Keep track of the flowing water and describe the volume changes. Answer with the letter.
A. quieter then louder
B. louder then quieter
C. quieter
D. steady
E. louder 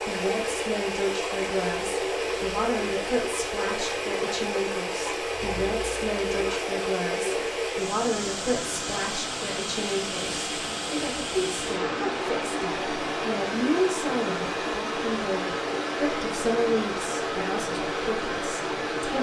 D.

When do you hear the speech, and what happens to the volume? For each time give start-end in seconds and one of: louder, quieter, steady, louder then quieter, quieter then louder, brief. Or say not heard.
0.1-19.1 steady.